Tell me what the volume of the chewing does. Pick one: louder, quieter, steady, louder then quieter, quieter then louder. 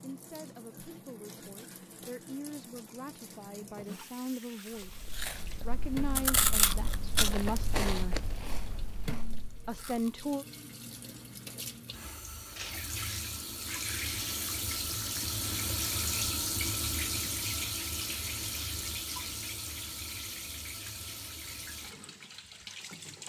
louder then quieter.